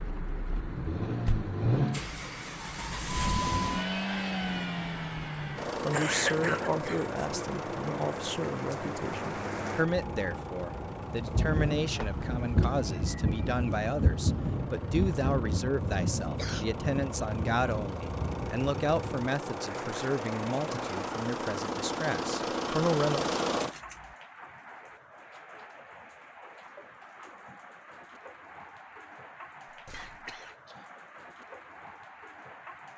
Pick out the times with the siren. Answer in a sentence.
The siren can't be heard in this clip.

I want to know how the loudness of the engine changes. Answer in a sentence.
The volume of the engine goes down, then up.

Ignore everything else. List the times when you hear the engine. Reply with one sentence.
You can hear the engine from 0.0 to 24.1 s.